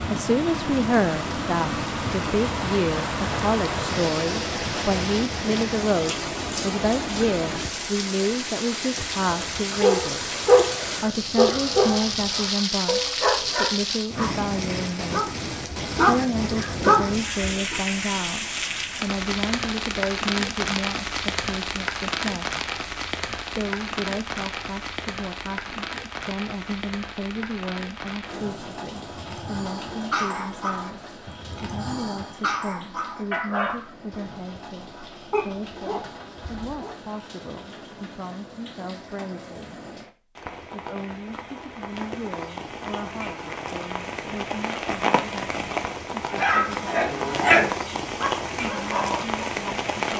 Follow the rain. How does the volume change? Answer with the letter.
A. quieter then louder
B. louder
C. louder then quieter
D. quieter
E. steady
A.